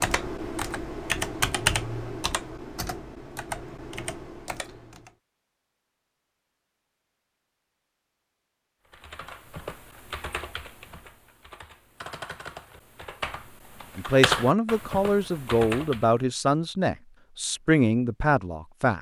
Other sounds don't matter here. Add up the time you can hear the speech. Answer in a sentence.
The speech can be heard for 5 seconds in total.